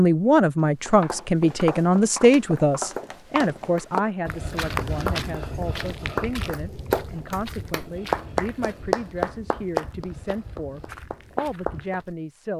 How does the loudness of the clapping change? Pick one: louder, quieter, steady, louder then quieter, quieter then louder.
louder then quieter.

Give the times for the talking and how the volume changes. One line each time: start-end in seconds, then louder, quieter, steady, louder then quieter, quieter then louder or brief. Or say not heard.
0.0-12.5 quieter.